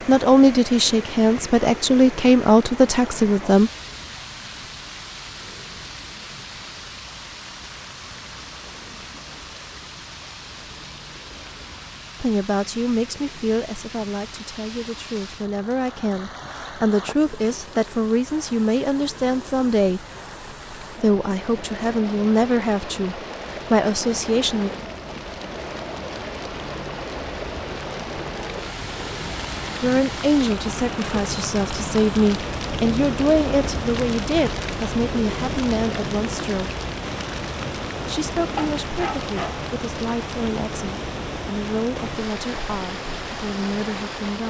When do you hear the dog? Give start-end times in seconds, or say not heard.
38.5-39.6.